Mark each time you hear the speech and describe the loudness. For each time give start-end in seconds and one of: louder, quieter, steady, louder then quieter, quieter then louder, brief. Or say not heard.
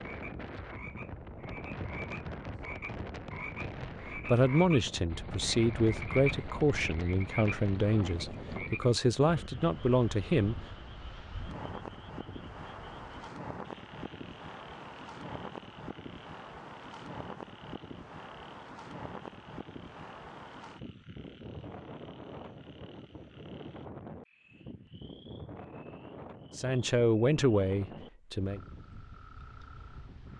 4.2-10.6 steady
26.6-28.6 brief.